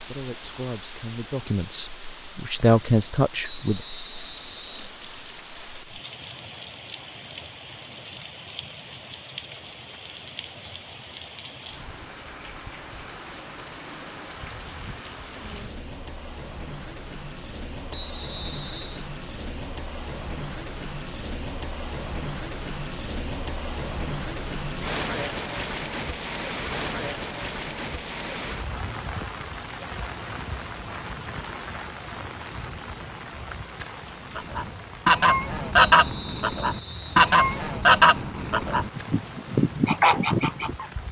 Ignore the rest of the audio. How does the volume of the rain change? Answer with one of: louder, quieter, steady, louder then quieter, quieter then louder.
louder then quieter.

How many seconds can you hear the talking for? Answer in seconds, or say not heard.
4 s.